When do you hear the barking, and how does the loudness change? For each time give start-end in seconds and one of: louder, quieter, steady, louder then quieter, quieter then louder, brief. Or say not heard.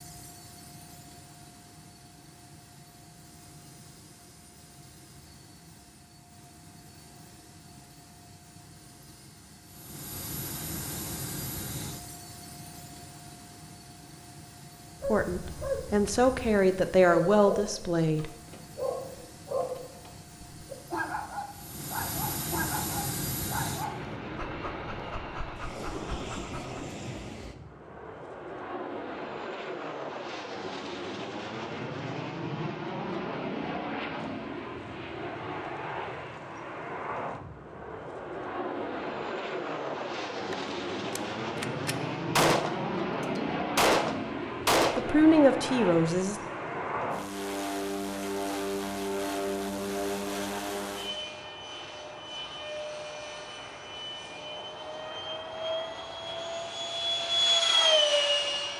14.9-26.9 quieter.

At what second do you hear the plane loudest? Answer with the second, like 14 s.
58 s.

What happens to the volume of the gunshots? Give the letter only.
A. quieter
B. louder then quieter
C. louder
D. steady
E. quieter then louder
C.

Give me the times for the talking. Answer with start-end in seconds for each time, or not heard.
15.1-18.3, 45.0-46.4.